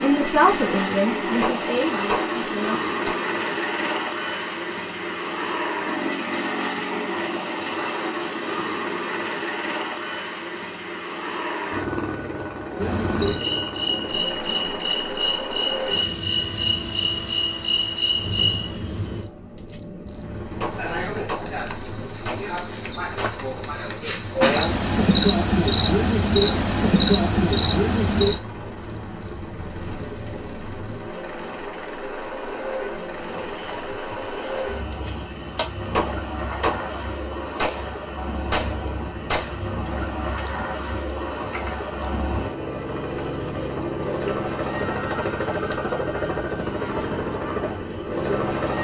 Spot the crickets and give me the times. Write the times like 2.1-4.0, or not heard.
12.8-48.7.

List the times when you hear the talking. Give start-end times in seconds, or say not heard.
0.0-2.8.